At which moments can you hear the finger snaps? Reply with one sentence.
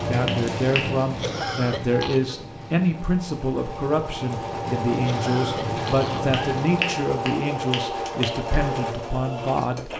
You can hear the finger snaps from 0.2 to 0.9 s and from 6.3 to 8.3 s.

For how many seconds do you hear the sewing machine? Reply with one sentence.
You can hear the sewing machine for 10 seconds altogether.